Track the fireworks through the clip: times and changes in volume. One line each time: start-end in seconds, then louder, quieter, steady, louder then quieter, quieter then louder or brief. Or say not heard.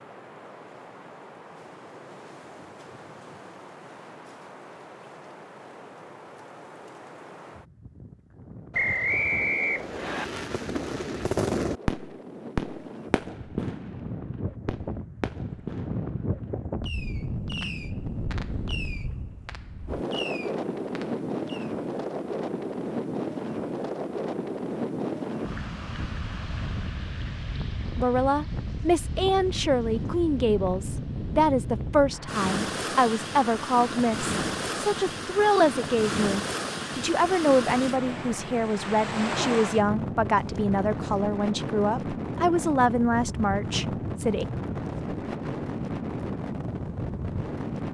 9.8-21.7 quieter.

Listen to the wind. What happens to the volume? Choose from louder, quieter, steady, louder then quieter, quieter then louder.
louder.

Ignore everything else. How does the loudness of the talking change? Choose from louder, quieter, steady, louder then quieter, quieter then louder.
steady.